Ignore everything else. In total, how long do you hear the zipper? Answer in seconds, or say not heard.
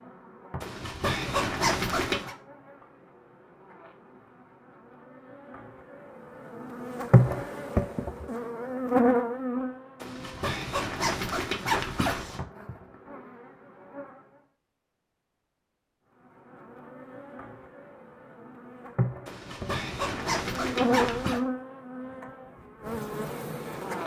6 s.